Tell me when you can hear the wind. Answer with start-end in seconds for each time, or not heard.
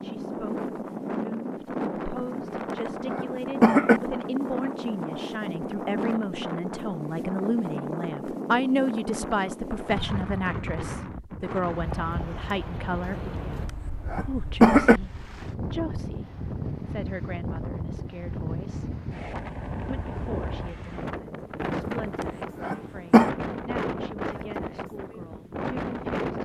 0.0-26.3.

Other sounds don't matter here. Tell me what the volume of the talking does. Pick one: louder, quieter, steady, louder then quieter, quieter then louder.
louder then quieter.